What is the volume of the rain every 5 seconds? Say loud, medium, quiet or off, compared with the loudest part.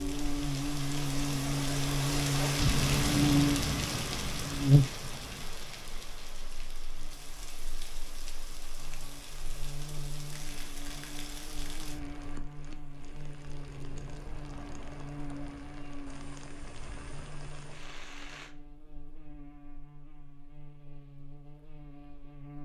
loud, quiet, quiet, quiet, off.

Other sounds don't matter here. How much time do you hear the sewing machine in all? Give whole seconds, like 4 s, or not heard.
not heard.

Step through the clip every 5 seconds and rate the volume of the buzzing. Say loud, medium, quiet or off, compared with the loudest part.
loud, quiet, quiet, quiet, quiet.